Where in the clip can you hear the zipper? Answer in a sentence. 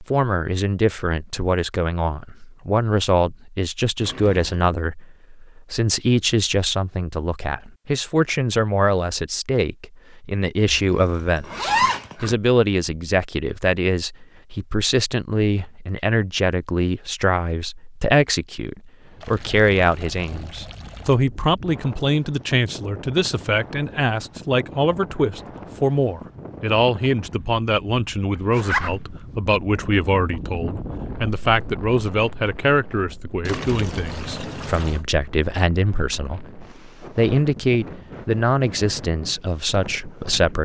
The zipper can be heard from 10.7 to 12.3 s and from 28.5 to 29.1 s.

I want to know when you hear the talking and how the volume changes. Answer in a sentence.
The talking can be heard from 0.0 to 40.6 s, at a steady volume.